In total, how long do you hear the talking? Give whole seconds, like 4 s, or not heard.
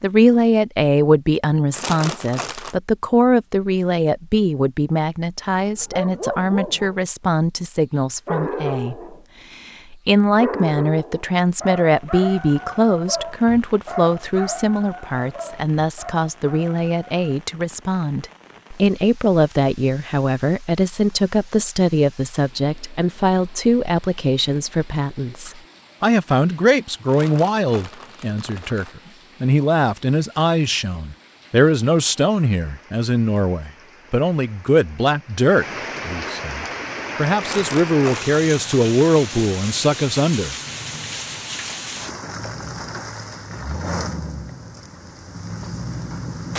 40 s.